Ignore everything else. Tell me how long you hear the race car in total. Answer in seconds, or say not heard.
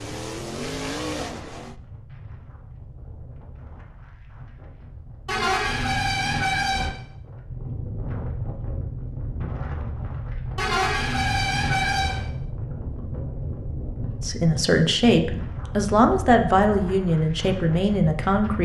2 s.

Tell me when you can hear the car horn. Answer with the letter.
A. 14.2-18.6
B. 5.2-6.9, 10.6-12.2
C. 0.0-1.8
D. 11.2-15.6
B.